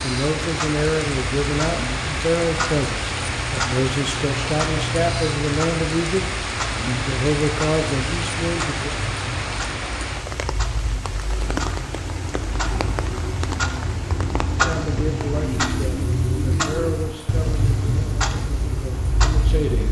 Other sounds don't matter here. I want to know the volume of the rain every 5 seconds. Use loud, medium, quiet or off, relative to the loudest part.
loud, loud, medium, quiet.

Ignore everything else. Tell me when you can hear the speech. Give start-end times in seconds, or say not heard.
0.0-6.2, 6.8-8.9, 14.6-19.8.